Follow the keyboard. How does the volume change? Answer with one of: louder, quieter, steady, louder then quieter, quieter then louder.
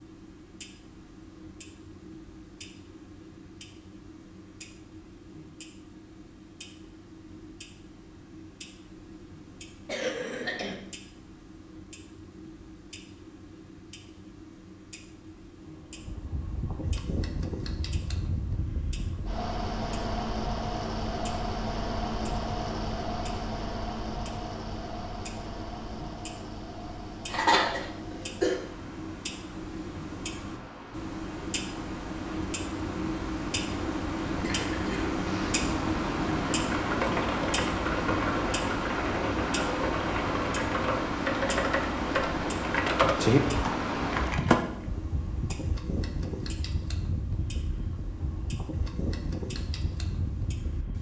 louder.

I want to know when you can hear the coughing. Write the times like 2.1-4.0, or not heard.
9.8-10.8, 27.3-28.6, 34.4-35.6.